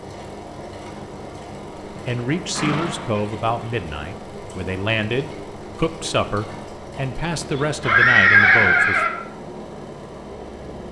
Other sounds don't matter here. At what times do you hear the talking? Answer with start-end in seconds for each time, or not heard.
1.9-9.1.